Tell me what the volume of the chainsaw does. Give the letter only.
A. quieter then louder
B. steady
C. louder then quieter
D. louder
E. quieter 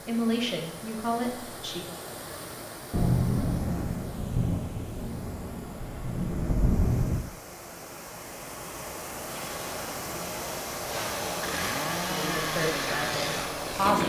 D.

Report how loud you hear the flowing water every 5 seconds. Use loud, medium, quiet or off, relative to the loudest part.
medium, medium, loud.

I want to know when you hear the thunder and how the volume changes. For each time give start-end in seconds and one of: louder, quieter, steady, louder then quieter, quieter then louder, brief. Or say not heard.
2.9-7.2 quieter then louder.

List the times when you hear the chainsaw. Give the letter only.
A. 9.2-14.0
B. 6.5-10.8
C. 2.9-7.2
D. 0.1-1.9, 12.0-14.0
A.